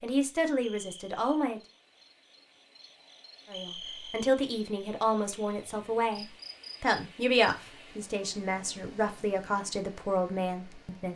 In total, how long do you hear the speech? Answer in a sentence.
The speech can be heard for 9 seconds in total.